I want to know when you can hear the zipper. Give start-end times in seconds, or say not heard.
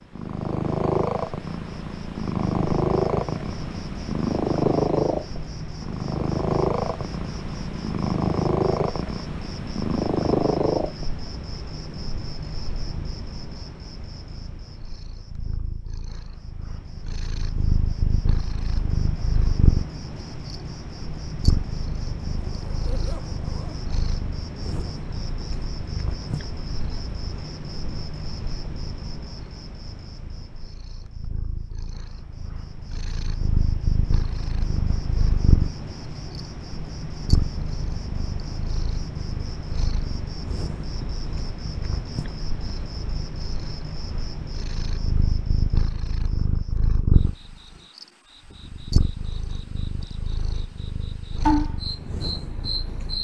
22.4-23.9.